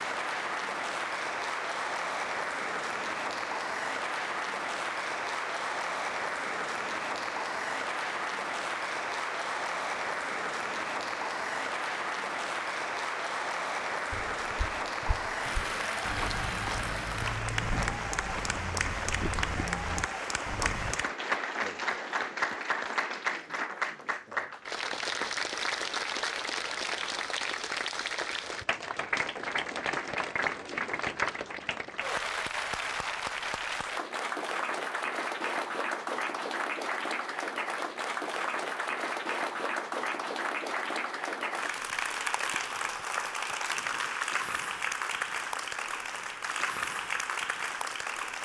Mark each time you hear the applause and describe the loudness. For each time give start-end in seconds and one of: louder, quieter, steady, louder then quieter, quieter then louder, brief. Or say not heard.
0.0-48.3 steady.